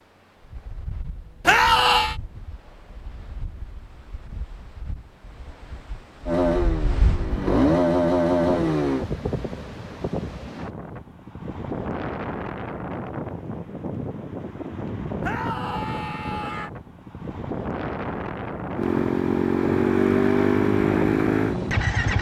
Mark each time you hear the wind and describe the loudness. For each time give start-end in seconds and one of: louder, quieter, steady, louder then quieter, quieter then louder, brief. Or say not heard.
0.0-22.1 louder.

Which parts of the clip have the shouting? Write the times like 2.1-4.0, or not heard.
1.4-2.1, 15.2-16.7.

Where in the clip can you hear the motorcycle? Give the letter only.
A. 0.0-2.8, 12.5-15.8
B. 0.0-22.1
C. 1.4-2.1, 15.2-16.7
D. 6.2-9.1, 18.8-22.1
D.